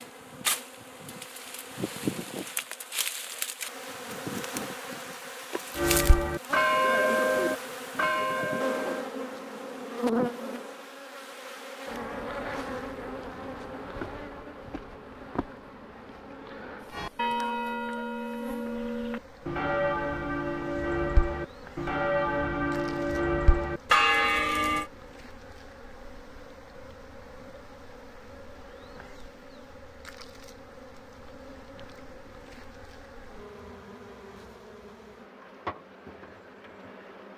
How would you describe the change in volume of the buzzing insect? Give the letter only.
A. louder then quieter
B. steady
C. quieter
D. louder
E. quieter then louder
C.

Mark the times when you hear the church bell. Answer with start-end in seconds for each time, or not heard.
5.8-9.1, 16.9-24.9.